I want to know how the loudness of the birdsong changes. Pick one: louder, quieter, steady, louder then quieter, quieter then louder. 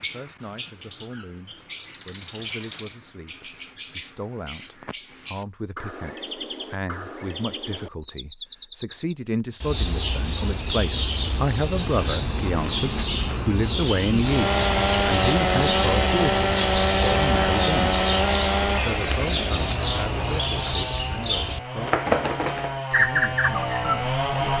louder.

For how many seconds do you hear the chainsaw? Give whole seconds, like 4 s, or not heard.
10 s.